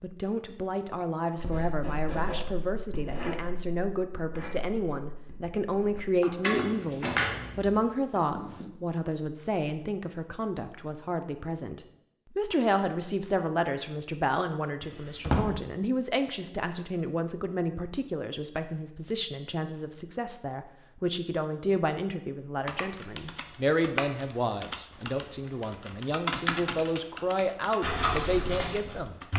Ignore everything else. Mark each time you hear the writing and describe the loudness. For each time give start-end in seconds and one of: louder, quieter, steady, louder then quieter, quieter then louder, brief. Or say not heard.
1.4-8.7 quieter then louder
27.8-29.3 brief.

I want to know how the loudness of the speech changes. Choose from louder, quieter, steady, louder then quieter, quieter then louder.
steady.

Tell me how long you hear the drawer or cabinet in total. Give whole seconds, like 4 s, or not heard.
2 s.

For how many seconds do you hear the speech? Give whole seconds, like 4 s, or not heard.
29 s.